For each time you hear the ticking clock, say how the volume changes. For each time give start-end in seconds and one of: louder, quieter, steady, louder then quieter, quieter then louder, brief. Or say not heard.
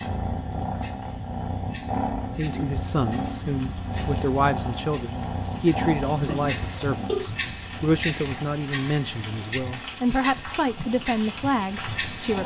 0.0-12.4 louder.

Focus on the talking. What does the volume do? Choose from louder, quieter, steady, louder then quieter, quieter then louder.
steady.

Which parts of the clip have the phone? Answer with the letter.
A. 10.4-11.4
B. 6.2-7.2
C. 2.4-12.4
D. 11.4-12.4
B.